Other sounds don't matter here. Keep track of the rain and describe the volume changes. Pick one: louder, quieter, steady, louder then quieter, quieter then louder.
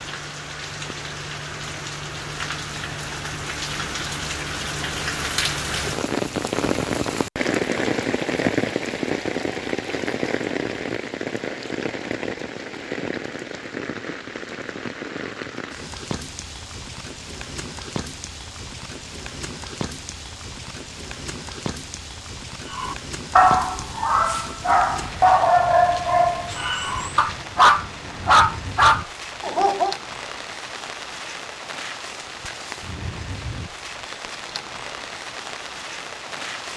quieter.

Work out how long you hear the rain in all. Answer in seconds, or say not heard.
37 s.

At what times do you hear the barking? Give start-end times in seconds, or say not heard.
22.7-29.9.